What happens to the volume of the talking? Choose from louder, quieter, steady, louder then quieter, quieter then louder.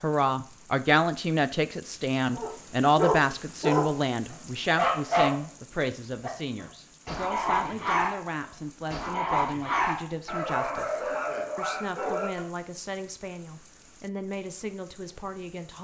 quieter.